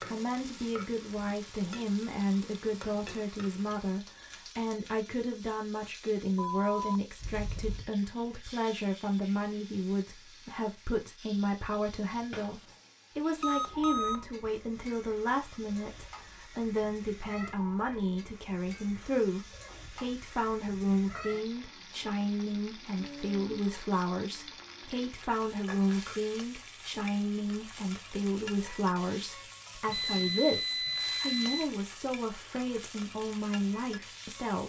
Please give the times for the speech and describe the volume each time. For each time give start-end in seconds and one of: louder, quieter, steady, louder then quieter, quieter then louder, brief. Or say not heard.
0.1-34.6 steady.